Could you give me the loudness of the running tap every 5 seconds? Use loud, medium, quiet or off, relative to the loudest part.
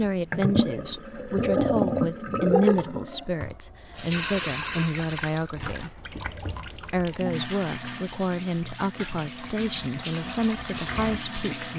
loud, medium, medium.